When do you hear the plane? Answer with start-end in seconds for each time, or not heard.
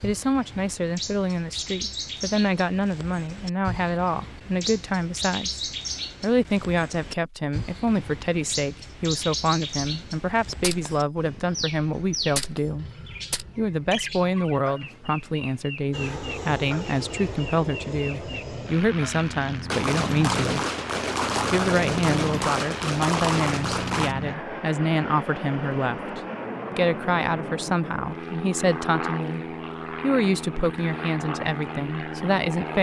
15.9-32.7.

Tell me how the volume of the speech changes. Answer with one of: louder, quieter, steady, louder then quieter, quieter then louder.
steady.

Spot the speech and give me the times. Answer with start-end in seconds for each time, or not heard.
0.0-5.6, 6.2-12.8, 13.6-20.6, 21.5-32.7.